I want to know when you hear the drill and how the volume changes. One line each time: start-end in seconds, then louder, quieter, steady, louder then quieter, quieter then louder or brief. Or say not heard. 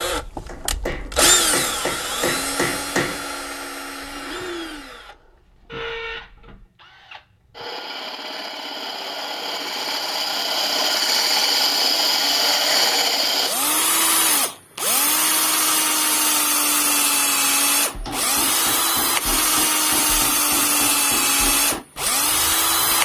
0.0-23.0 quieter then louder.